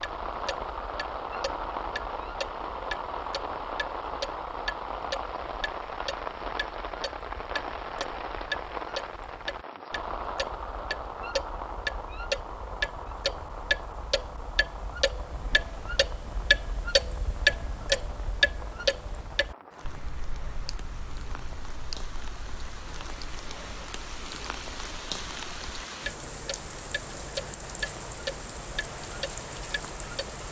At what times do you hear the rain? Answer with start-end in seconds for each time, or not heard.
0.0-30.4.